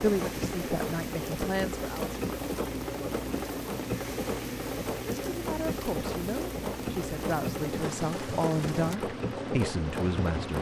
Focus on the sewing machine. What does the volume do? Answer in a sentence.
The volume of the sewing machine stays about the same.